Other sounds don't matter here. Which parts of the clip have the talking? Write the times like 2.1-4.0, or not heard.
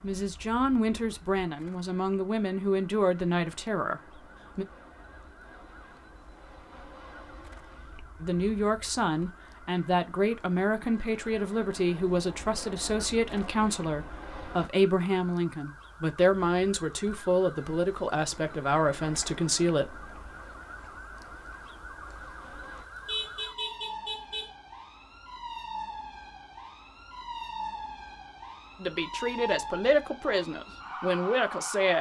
0.0-4.7, 8.2-20.1, 28.8-31.9.